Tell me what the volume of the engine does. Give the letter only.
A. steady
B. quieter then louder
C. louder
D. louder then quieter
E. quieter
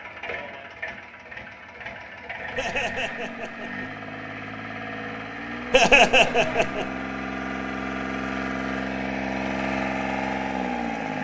C.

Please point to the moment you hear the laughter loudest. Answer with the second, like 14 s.
6 s.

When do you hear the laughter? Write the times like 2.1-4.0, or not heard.
2.5-3.9, 5.7-6.8.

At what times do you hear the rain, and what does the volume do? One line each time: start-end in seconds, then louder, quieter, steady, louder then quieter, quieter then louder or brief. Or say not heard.
not heard.